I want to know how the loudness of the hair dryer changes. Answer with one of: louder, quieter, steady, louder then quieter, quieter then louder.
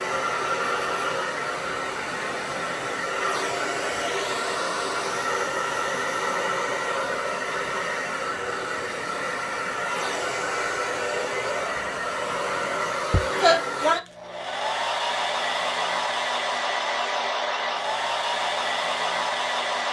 steady.